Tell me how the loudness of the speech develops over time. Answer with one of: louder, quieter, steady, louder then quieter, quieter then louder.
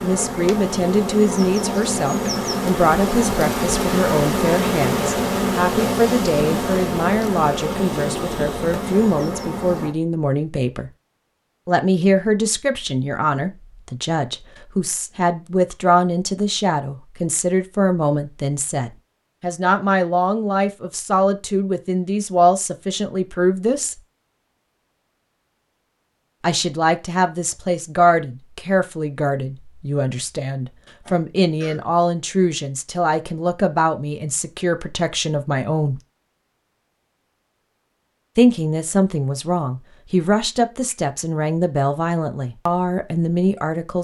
steady.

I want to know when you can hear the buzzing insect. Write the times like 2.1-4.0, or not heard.
0.0-9.9.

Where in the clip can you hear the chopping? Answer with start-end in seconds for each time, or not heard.
not heard.